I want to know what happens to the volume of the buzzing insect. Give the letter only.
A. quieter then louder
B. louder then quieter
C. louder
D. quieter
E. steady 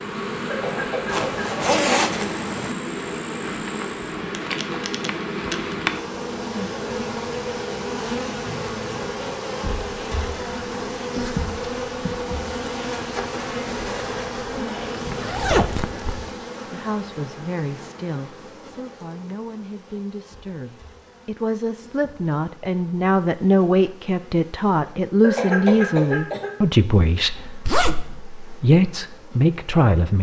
D.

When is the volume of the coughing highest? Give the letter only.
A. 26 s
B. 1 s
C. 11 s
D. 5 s
A.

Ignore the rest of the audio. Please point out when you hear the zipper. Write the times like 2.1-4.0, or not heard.
1.1-2.8, 15.2-16.3, 27.6-28.2.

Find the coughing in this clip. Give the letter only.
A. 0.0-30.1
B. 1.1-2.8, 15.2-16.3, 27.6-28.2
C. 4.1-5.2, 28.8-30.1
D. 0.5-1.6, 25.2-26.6
D.